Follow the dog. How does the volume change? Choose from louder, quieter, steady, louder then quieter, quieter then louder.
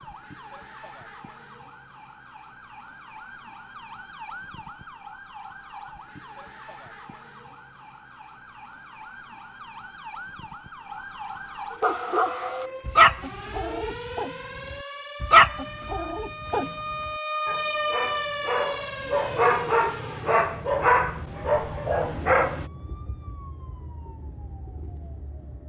quieter then louder.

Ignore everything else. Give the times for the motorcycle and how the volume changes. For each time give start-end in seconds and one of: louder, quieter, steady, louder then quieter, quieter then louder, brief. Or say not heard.
not heard.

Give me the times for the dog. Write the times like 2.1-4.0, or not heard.
11.8-22.7.